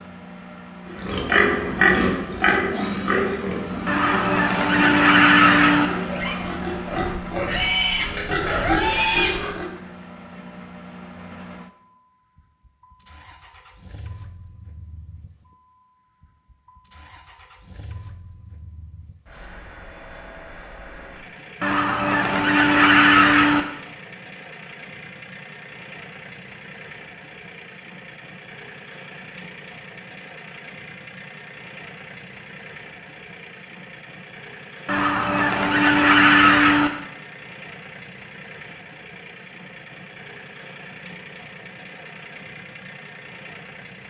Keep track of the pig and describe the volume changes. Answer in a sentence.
The loudness of the pig goes down, then up.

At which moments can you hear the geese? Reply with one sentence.
You can hear the geese from 3.9 to 5.9 s, from 21.6 to 23.6 s and from 34.9 to 36.9 s.